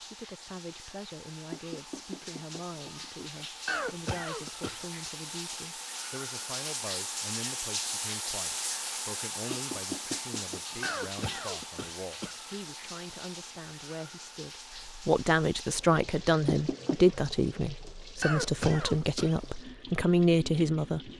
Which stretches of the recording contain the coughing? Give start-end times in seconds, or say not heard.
3.6-4.8, 10.8-12.3, 18.2-19.4.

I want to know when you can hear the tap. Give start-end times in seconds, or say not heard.
0.0-21.1.